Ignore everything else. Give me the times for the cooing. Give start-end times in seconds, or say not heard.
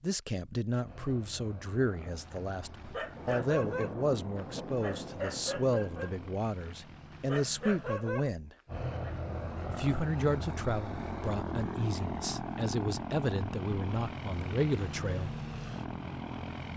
not heard.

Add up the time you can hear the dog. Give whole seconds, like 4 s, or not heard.
7 s.